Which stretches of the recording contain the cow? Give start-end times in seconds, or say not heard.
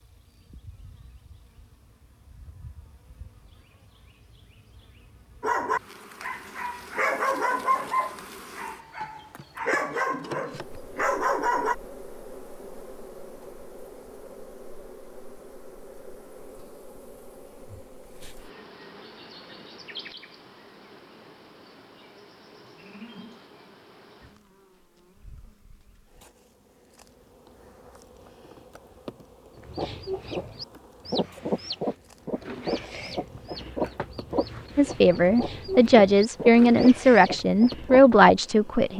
22.6-23.5.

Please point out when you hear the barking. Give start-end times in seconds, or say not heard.
5.4-11.8.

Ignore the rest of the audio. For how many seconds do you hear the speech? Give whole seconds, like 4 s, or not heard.
4 s.